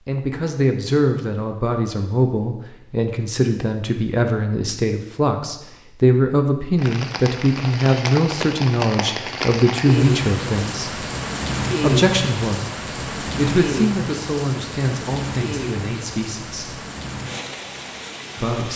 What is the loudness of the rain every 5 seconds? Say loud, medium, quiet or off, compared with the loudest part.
off, loud, loud, medium.